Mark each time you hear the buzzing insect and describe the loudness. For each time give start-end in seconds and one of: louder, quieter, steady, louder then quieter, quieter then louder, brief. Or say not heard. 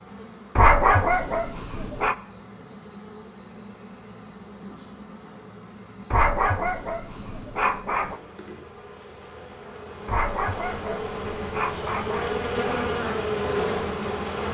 0.0-14.4 louder.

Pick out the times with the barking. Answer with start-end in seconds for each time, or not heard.
0.6-2.1, 6.1-8.2, 10.1-12.9.